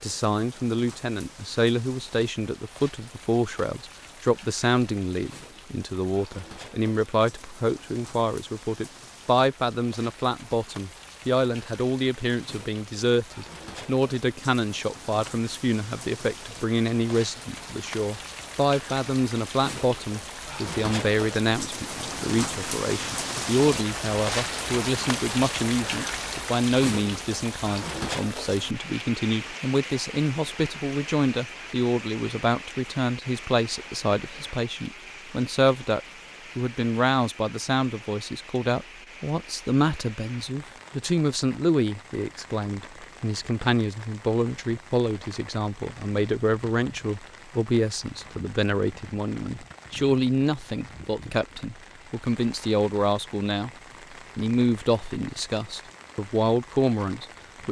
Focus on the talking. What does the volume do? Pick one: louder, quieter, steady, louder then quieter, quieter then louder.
steady.